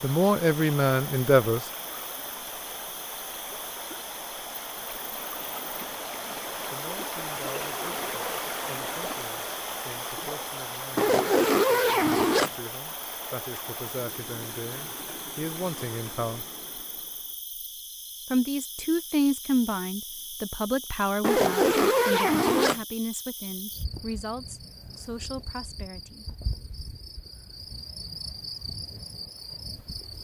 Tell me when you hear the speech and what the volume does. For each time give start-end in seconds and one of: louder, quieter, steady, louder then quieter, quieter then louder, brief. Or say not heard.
0.0-1.6 brief
6.7-16.4 louder
18.3-26.2 quieter.